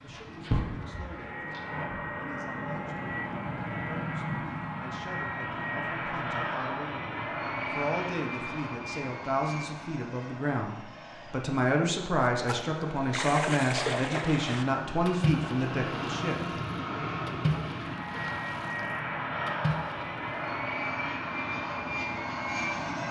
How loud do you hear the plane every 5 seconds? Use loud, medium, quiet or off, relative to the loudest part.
loud, loud, medium, loud, loud.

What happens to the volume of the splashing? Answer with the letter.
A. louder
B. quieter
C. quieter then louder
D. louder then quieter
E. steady
C.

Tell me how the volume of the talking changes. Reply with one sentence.
The volume of the talking goes up.